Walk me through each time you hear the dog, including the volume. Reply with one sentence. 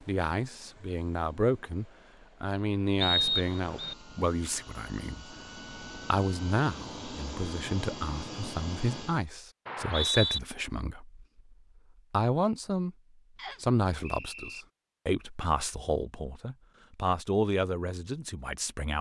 You can't hear the dog here.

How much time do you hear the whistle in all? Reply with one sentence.
The whistle can be heard for 3 seconds in total.